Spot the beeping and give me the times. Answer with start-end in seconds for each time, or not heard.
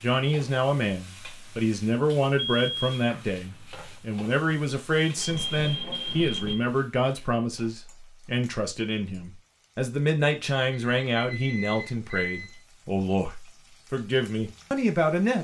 2.4-3.0, 5.2-6.5, 10.7-12.6.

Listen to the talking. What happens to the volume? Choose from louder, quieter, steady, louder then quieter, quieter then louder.
steady.